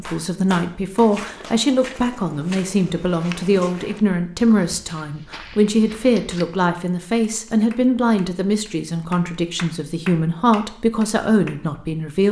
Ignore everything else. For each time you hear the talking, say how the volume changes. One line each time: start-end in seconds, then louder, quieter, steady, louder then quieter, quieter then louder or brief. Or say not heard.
0.0-12.2 steady.